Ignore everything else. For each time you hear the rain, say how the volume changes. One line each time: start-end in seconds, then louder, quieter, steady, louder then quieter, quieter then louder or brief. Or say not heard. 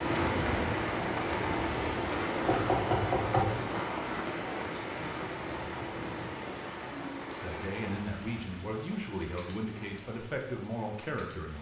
0.0-11.5 quieter.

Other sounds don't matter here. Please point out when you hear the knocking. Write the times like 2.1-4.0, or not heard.
2.5-4.0.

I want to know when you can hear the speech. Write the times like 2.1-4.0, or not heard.
7.4-11.5.